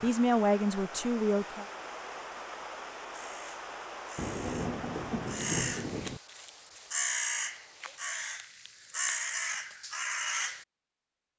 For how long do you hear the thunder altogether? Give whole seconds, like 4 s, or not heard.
2 s.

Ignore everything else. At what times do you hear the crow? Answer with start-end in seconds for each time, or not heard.
3.1-10.7.